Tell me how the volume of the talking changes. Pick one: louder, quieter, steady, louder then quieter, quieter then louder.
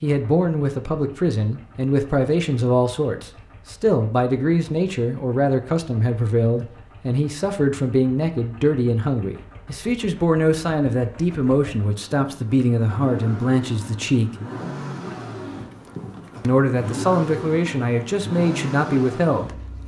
steady.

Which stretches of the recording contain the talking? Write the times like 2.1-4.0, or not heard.
0.0-14.3, 16.4-19.5.